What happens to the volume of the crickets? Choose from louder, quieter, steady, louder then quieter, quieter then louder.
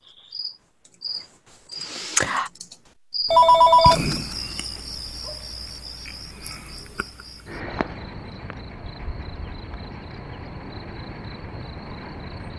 quieter.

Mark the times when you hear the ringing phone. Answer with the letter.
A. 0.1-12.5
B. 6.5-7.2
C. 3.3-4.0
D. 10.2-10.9
C.